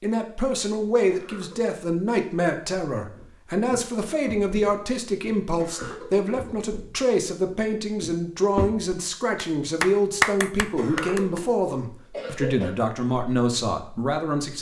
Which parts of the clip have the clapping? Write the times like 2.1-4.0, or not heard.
9.3-11.4.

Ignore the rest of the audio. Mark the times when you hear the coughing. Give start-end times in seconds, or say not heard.
1.1-1.8, 5.5-6.5, 10.8-12.7.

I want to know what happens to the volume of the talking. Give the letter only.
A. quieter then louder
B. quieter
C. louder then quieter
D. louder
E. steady
E.